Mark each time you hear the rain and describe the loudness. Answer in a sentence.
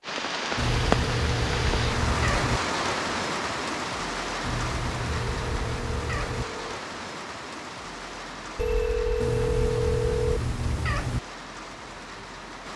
The rain can be heard from 0.0 to 12.7 s, getting quieter.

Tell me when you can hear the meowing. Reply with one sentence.
The meowing can be heard from 0.6 to 2.6 s, from 4.4 to 6.5 s and from 9.2 to 11.2 s.